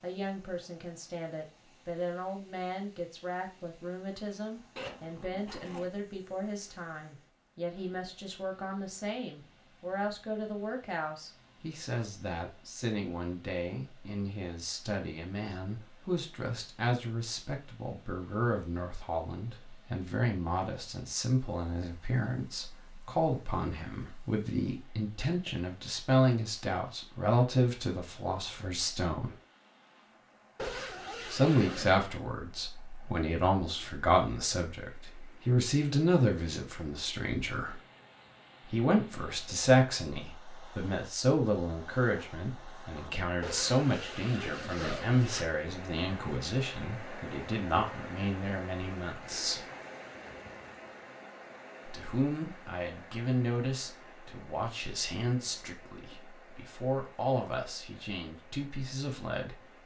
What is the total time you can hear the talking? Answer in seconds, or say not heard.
55 s.